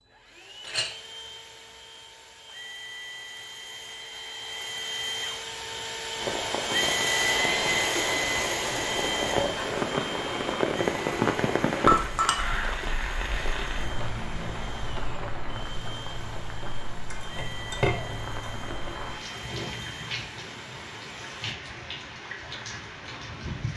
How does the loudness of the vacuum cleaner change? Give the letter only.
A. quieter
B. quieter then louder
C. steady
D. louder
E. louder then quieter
E.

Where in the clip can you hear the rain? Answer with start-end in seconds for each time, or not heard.
6.2-23.7.